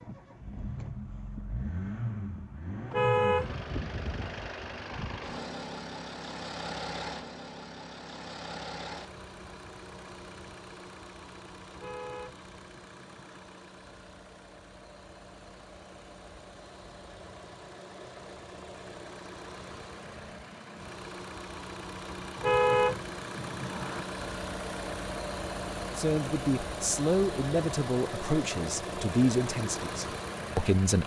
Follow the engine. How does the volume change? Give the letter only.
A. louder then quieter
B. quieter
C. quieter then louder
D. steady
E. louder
C.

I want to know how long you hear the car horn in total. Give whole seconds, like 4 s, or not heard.
4 s.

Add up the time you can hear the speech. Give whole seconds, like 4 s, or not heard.
5 s.